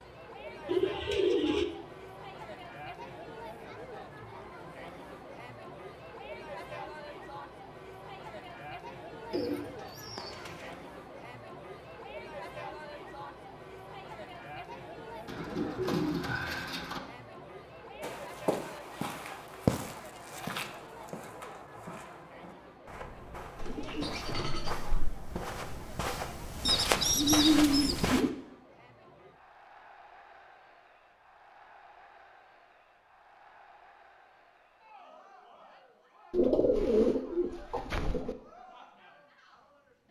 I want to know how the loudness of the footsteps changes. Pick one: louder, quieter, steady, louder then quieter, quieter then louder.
quieter then louder.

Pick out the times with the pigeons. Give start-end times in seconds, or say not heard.
0.7-1.6, 9.3-10.8, 15.2-17.0, 23.6-25.1, 26.6-28.3, 36.3-38.4.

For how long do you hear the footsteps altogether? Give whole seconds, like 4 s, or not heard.
10 s.